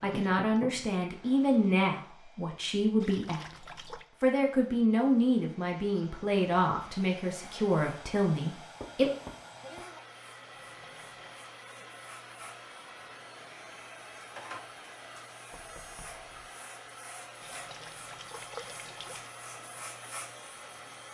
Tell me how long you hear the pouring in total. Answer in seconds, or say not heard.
4 s.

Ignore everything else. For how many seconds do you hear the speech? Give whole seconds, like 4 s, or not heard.
9 s.